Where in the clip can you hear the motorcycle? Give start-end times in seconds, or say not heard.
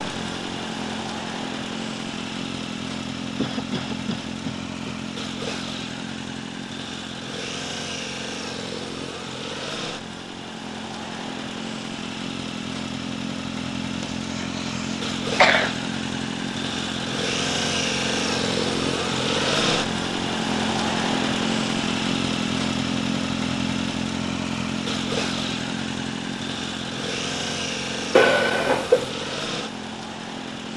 0.0-30.7.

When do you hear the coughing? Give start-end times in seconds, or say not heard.
3.4-5.0, 13.9-15.8, 28.1-29.1.